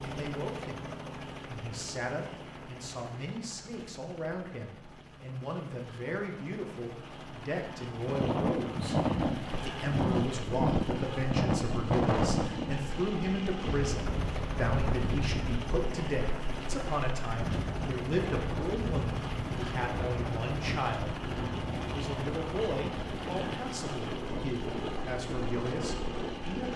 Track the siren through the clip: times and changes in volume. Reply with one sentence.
You can't hear the siren here.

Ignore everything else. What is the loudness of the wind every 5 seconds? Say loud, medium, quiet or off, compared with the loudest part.
off, loud, loud, medium, medium, medium.